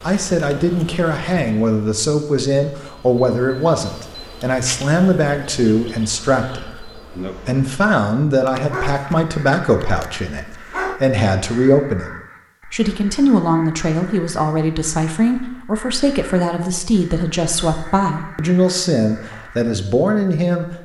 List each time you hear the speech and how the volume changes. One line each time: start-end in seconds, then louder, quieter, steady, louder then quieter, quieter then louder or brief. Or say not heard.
0.0-20.8 steady.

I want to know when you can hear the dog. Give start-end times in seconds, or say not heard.
8.4-11.0.